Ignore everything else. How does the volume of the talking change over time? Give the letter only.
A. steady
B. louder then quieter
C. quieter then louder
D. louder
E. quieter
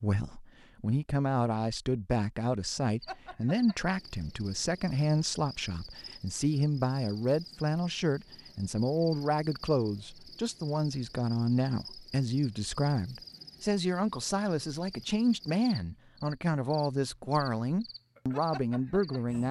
A.